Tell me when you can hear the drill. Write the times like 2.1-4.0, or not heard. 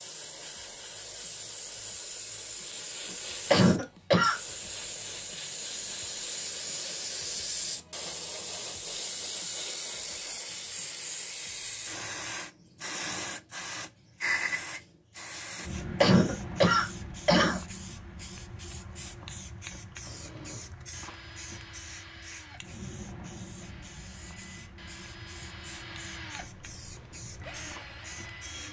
20.0-28.6.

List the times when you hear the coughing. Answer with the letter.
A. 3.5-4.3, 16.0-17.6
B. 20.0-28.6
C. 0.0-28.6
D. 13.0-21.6
A.